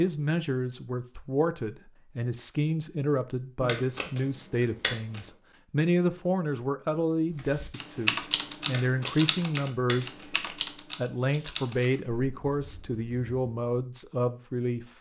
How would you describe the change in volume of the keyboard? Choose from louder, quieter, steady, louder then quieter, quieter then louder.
quieter.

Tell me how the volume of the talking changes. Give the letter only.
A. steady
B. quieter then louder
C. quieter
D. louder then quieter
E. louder
A.